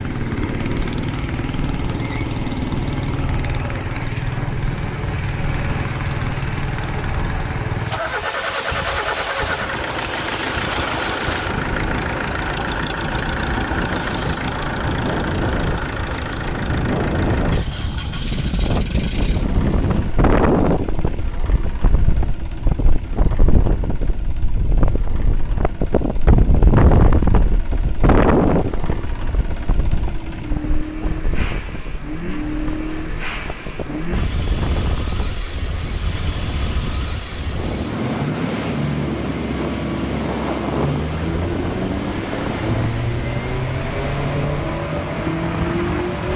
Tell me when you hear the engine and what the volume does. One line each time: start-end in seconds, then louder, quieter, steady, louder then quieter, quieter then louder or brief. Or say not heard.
0.0-46.3 quieter then louder.